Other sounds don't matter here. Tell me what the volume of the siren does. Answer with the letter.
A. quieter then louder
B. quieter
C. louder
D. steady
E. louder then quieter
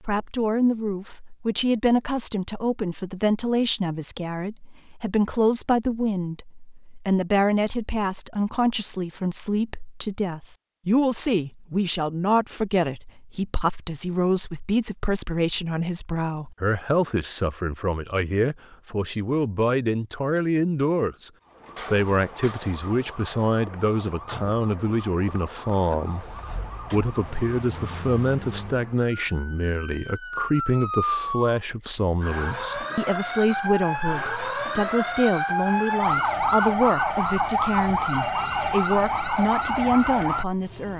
C.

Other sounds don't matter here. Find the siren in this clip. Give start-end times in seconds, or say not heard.
21.4-40.9.